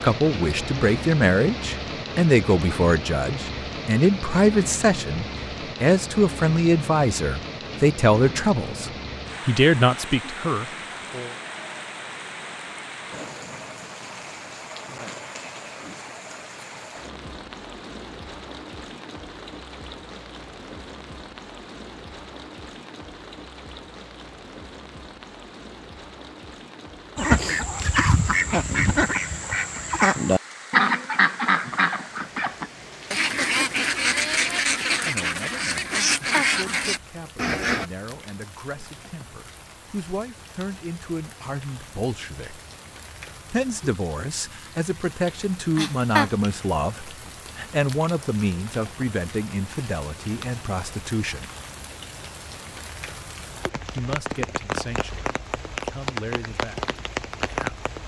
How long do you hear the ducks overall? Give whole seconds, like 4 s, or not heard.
11 s.